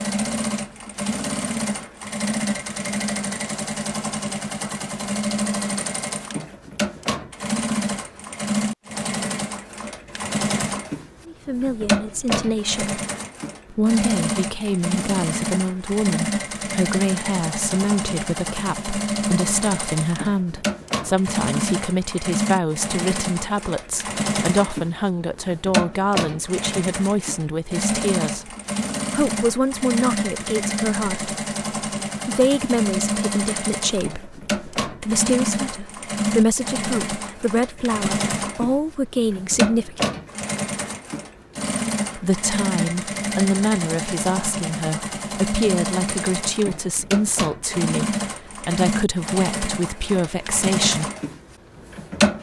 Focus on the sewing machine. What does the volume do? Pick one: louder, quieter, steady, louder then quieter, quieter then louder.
steady.